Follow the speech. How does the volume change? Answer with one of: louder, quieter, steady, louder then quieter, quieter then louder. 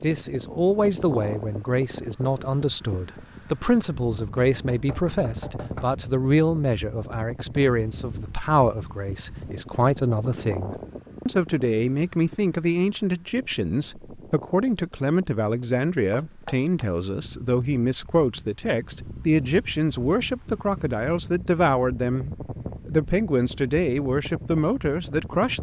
steady.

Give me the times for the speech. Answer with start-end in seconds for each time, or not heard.
0.0-25.5.